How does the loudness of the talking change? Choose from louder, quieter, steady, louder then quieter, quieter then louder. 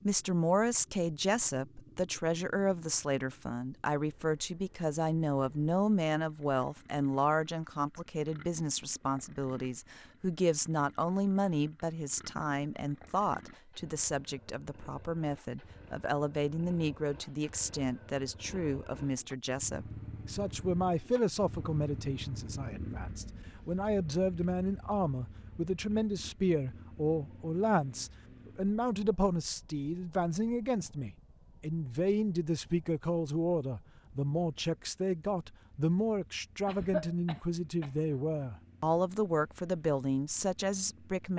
steady.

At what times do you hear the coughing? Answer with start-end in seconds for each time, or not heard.
36.6-37.9.